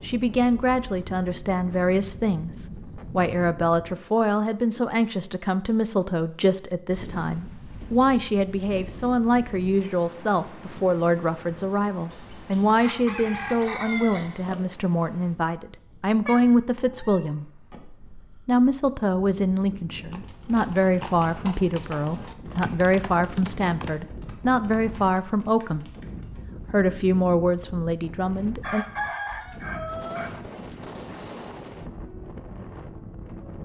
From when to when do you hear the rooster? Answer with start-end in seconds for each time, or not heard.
12.1-14.7, 28.6-30.3.